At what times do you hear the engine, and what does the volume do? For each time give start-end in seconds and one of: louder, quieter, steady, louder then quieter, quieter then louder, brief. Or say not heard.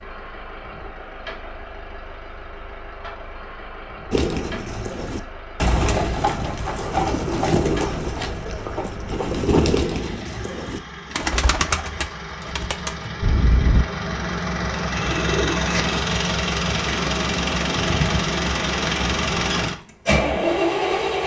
0.0-21.2 louder.